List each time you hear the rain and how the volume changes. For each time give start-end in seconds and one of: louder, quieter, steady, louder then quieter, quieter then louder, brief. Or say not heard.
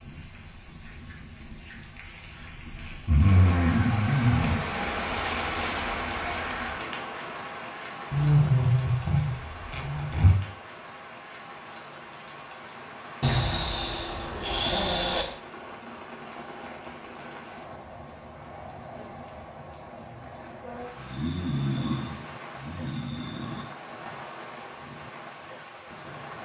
0.0-26.3 quieter.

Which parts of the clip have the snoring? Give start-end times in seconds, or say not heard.
3.0-4.5, 8.1-10.3, 13.2-15.2, 20.9-23.6.